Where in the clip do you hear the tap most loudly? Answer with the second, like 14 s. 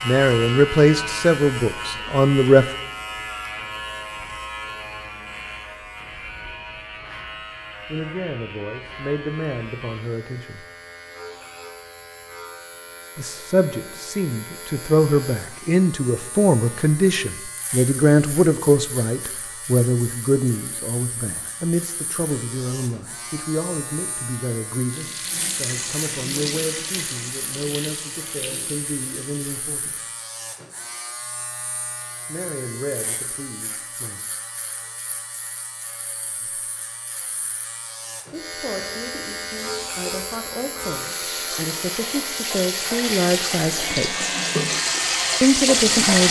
46 s.